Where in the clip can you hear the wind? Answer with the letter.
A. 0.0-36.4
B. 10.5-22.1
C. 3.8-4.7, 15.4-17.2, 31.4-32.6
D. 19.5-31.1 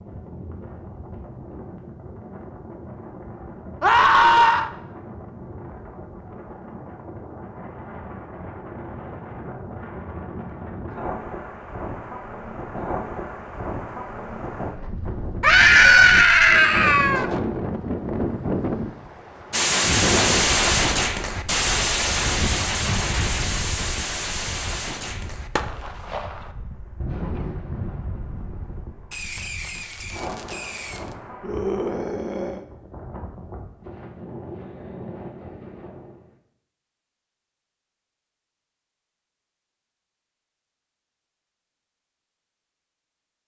A.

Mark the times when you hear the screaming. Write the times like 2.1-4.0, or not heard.
3.8-4.7, 15.4-17.2, 31.4-32.6.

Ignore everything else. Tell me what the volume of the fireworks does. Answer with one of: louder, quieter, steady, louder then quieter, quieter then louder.
quieter.